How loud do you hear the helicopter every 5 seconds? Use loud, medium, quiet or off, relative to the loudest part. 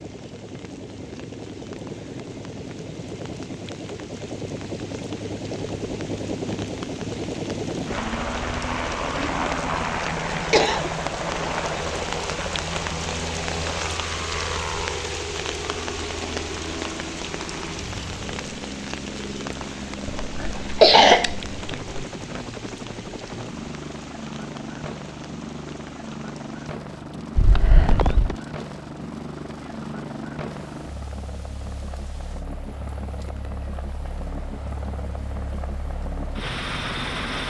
medium, loud, loud, medium, medium, medium, medium, loud.